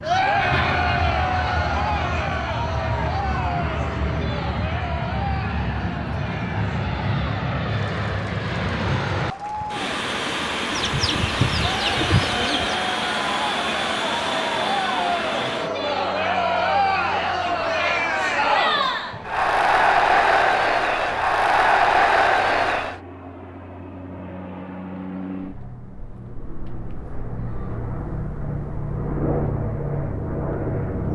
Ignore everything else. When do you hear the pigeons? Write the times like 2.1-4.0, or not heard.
10.7-12.8.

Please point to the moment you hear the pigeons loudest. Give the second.
12 s.